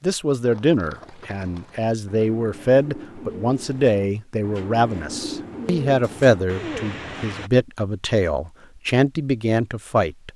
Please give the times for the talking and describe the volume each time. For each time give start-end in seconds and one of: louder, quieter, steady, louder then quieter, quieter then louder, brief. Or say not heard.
0.0-10.3 steady.